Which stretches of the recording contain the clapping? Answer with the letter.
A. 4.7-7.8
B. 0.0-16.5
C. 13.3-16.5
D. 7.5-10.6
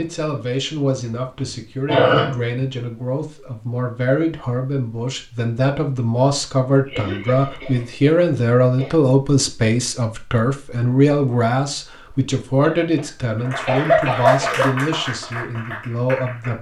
C.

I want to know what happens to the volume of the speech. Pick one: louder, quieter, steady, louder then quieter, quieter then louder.
louder then quieter.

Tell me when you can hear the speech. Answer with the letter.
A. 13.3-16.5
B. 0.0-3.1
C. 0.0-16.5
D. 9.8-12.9
C.